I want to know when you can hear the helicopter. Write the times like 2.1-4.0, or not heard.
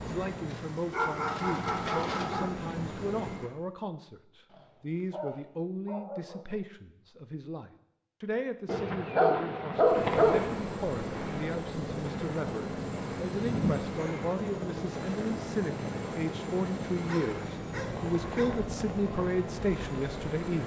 0.0-3.5, 9.8-20.6.